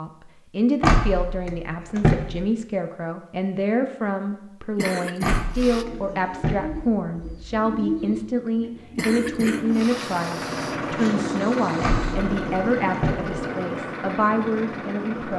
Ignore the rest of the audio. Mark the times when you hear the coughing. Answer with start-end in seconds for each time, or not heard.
4.8-5.8, 8.9-10.8.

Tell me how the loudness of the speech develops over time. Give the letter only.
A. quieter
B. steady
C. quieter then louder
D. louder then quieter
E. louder
B.